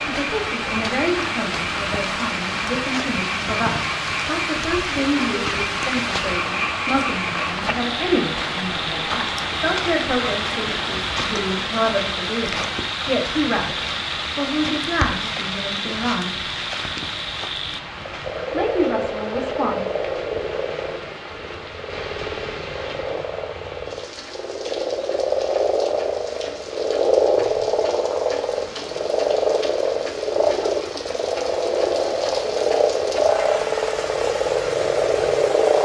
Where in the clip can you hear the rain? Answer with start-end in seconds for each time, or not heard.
0.0-35.8.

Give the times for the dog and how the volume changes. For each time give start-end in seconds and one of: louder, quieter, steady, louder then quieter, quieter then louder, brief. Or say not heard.
not heard.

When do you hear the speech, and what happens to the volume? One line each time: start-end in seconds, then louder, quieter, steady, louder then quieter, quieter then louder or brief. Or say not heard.
0.0-16.4 steady
18.5-19.8 brief.